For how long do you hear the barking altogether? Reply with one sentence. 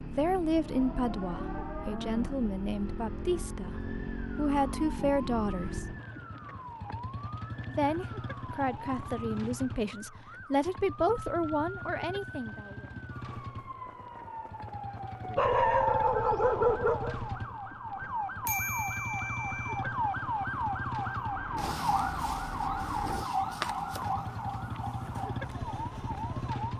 The barking can be heard for 2 seconds in total.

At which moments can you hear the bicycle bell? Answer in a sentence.
You can hear the bicycle bell from 18.4 to 19.9 s.